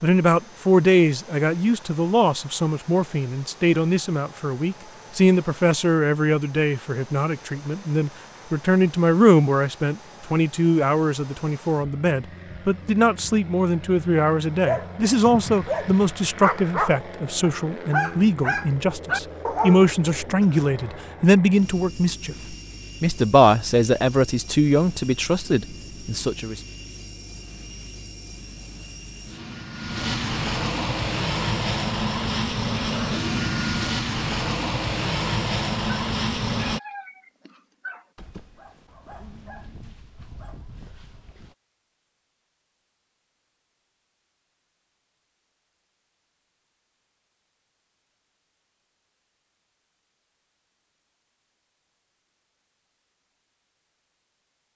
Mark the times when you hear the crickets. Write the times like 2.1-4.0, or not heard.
not heard.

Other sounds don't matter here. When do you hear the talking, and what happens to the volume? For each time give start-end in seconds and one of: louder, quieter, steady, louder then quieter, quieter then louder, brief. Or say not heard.
0.0-26.6 steady.